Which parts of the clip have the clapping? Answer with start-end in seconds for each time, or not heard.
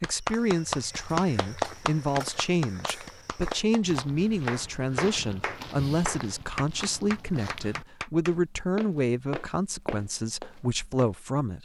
0.0-8.3.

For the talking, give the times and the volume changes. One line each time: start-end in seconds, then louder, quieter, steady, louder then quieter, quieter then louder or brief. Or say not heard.
0.0-11.6 steady.